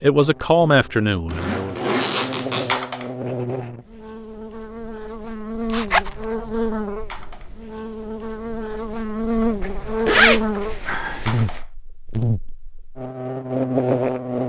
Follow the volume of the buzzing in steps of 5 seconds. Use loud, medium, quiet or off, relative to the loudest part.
medium, loud, loud.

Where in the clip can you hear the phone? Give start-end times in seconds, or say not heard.
2.6-3.1, 7.1-7.5, 11.2-11.7.